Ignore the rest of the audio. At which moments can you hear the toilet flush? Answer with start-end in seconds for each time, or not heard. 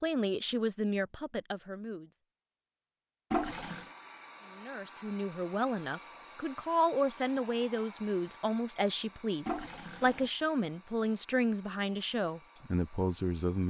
3.3-3.9, 9.4-10.3.